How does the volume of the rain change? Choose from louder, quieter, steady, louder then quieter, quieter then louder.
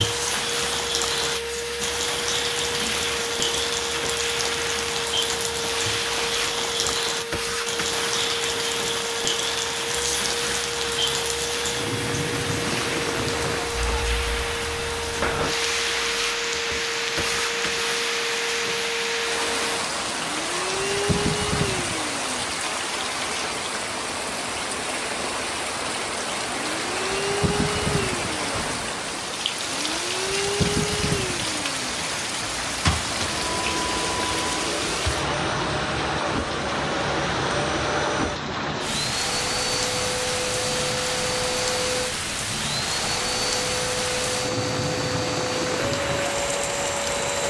steady.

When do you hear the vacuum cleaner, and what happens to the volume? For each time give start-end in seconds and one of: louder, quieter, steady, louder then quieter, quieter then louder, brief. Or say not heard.
0.0-22.7 steady
26.5-47.4 steady.